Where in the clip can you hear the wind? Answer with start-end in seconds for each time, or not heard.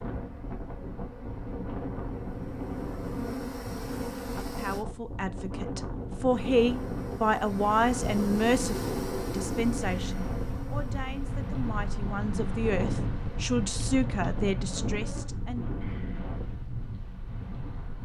0.0-18.0.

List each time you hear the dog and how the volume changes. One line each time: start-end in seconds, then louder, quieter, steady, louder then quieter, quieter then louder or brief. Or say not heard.
not heard.